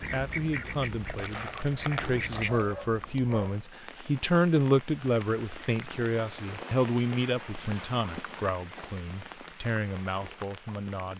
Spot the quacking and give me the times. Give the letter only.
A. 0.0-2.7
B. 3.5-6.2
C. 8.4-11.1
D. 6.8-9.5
A.